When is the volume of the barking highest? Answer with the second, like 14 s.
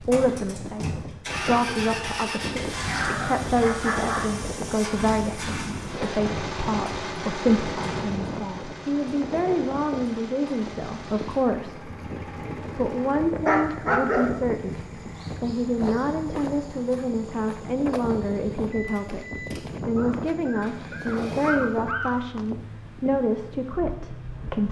14 s.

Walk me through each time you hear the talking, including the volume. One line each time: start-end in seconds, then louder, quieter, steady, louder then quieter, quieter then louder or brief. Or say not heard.
0.0-11.9 steady
12.8-24.6 steady.